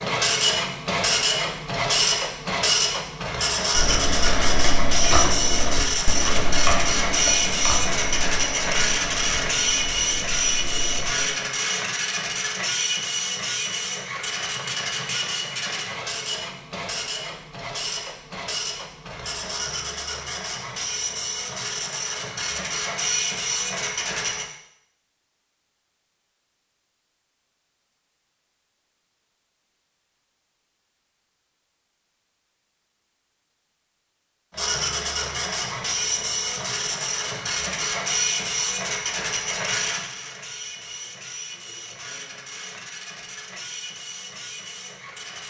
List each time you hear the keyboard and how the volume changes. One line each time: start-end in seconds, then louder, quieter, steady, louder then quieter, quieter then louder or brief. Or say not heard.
3.8-11.2 quieter.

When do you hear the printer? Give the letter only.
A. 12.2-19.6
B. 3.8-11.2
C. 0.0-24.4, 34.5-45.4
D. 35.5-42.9
C.